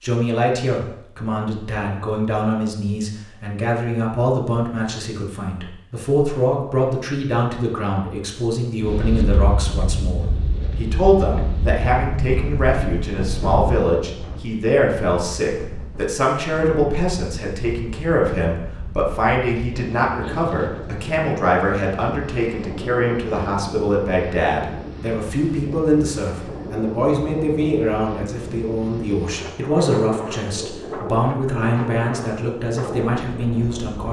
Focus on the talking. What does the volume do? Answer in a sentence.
The volume of the talking stays about the same.